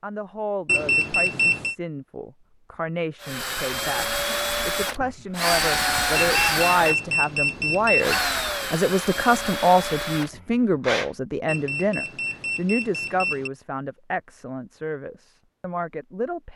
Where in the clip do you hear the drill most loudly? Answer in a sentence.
The volume of the drill peaks at 6 seconds.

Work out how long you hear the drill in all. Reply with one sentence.
You can hear the drill for 8 seconds altogether.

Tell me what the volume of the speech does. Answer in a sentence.
The volume of the speech goes up, then down.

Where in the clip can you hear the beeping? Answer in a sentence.
The beeping can be heard from 0.7 to 1.8 s, from 6.2 to 8.2 s and from 11.4 to 13.5 s.